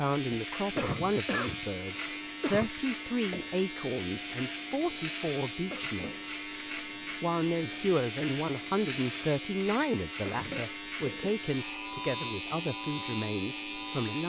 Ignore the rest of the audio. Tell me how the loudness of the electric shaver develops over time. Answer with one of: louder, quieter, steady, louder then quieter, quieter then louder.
steady.